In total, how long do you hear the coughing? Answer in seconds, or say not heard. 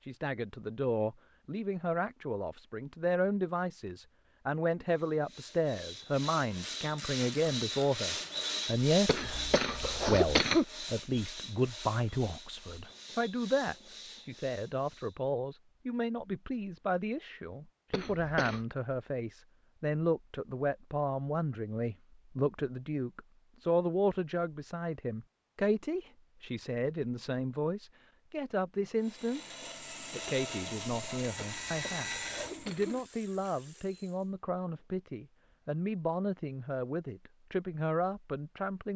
4 s.